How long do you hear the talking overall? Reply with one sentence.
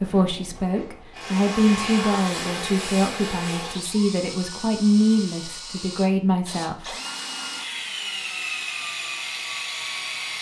The talking can be heard for 7 seconds in total.